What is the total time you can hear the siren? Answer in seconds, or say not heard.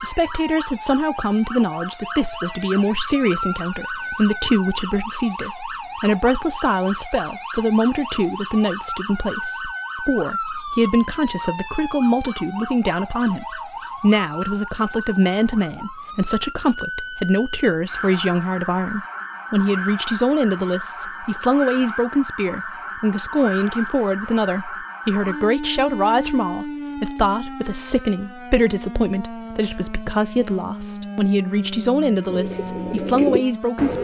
34 s.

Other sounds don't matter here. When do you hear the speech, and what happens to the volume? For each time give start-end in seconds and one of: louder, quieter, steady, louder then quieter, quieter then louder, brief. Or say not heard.
0.0-33.9 steady.